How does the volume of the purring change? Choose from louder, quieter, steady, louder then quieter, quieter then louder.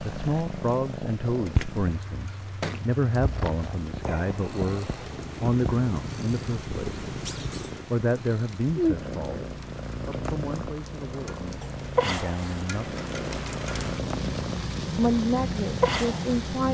steady.